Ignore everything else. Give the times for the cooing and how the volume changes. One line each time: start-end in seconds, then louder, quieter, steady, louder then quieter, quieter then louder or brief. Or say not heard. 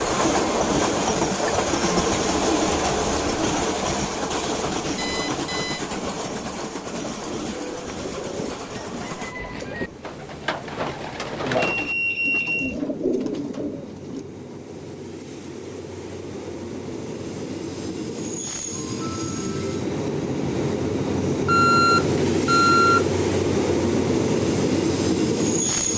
7.3-14.3 louder.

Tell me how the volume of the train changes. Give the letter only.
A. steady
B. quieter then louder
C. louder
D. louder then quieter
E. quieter
B.